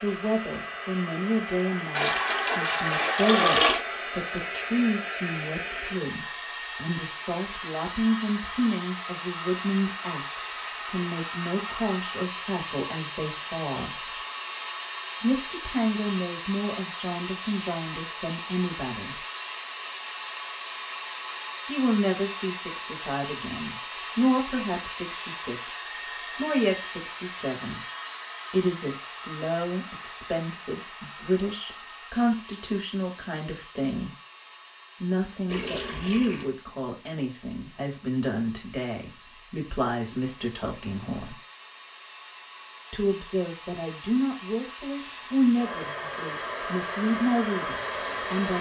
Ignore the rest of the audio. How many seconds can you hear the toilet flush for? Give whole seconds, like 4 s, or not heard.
3 s.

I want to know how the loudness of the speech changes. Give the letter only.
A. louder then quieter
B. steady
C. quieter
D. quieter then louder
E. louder
B.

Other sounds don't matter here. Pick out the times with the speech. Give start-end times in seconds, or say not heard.
0.0-14.2, 15.2-19.2, 21.6-27.8, 28.5-34.1, 35.0-41.4, 42.9-48.5.